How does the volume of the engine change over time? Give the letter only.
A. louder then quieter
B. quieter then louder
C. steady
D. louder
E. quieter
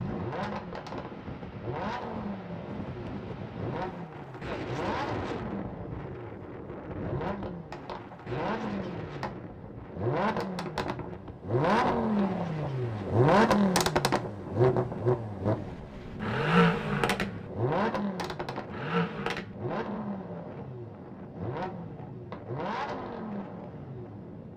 A.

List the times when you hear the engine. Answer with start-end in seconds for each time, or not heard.
0.0-24.5.